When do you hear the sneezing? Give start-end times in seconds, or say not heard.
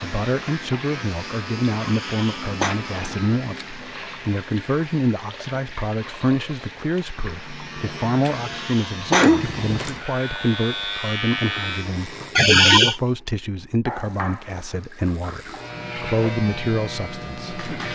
1.8-2.8, 8.3-9.7, 12.3-13.0.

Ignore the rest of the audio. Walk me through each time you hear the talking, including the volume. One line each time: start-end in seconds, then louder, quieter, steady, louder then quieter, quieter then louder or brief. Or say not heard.
0.0-17.6 steady.